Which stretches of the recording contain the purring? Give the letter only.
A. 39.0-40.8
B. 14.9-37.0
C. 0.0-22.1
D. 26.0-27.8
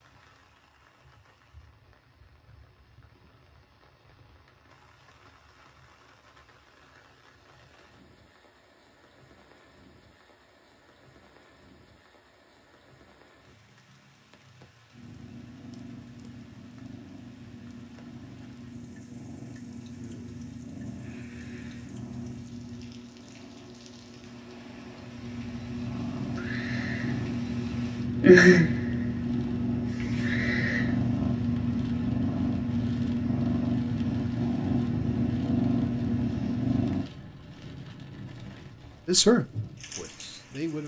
B.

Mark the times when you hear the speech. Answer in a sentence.
The speech can be heard from 39.0 to 40.8 s.